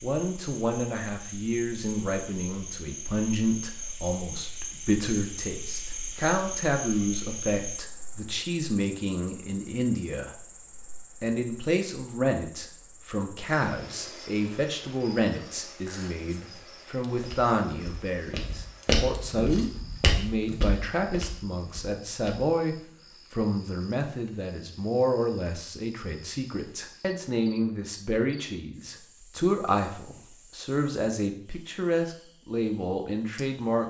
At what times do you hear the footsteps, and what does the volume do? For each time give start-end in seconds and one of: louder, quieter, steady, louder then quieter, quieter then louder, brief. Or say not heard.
17.2-22.5 louder then quieter.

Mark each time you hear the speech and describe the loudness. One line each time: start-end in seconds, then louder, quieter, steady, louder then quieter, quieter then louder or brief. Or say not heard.
0.0-10.4 steady
11.2-33.8 steady.